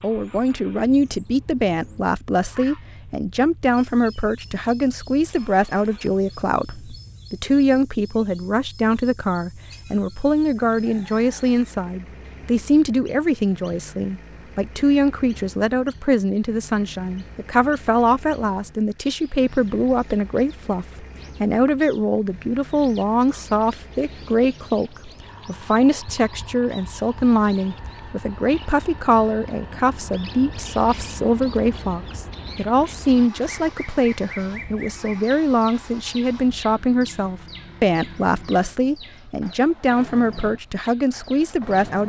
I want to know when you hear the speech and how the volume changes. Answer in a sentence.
You can hear the speech from 0.0 to 42.0 s, at a steady volume.